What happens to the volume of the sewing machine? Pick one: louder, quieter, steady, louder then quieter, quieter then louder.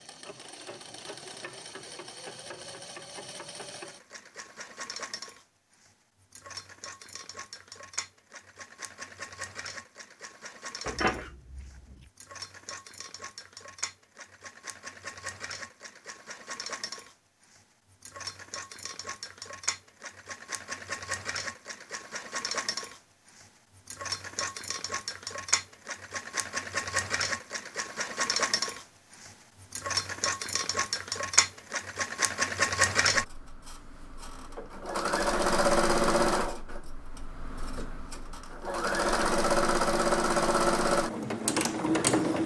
louder.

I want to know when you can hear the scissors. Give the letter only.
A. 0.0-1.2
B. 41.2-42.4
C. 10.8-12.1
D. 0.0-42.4
C.